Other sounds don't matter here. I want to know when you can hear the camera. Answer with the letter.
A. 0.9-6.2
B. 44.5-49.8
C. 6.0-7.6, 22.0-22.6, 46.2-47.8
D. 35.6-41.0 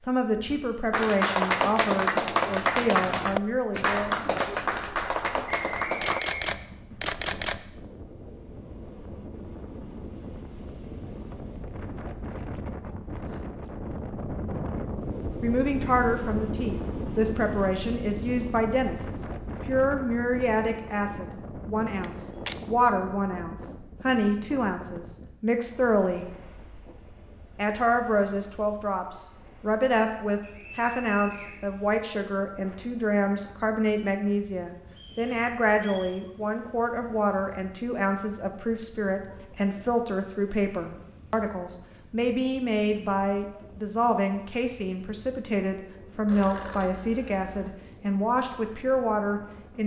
C.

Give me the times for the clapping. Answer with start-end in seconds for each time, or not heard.
0.9-6.2.